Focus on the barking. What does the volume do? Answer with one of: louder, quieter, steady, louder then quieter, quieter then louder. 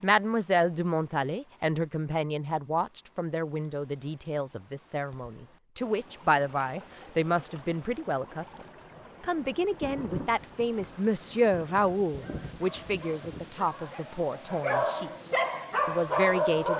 louder.